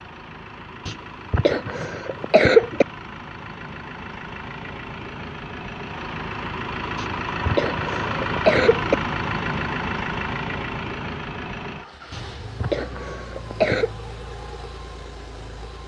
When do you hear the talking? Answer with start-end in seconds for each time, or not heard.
not heard.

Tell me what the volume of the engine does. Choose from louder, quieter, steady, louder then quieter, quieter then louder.
louder then quieter.